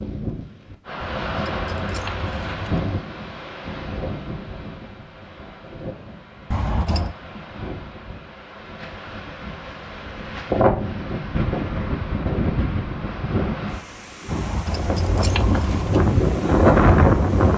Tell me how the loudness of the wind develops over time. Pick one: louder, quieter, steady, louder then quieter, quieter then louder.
quieter then louder.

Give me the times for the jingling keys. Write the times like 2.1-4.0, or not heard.
1.0-2.9, 6.5-7.2, 14.2-16.1.